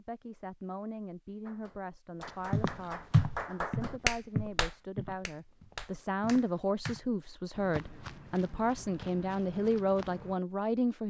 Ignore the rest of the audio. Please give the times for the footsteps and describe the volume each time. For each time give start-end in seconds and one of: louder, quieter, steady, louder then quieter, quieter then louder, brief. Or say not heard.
2.5-10.4 quieter.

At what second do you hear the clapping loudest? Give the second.
4 s.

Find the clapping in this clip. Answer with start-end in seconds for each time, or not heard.
1.4-7.0.